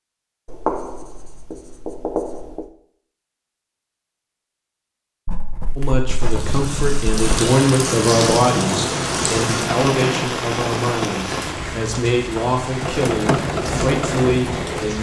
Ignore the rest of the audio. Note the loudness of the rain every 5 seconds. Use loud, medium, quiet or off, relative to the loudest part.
off, loud, loud.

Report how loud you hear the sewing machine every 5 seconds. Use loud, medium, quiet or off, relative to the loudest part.
off, loud, loud.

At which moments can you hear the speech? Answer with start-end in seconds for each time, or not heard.
5.8-14.9.